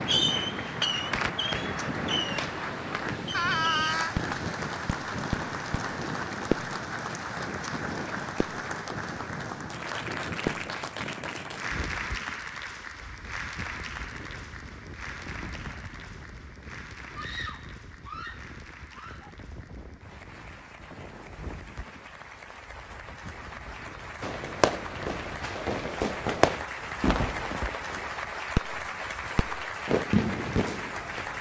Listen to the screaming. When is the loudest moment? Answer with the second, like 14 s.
4 s.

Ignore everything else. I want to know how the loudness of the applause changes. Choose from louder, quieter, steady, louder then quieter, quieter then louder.
quieter then louder.